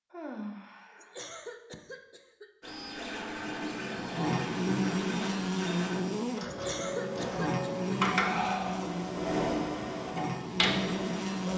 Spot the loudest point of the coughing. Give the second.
7 s.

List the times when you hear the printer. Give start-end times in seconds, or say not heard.
2.6-11.5.